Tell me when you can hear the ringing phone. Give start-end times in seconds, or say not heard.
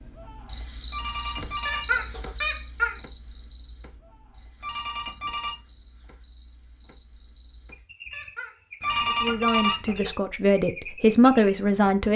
0.9-2.4, 4.6-5.5, 8.8-10.1.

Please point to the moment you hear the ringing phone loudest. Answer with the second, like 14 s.
10 s.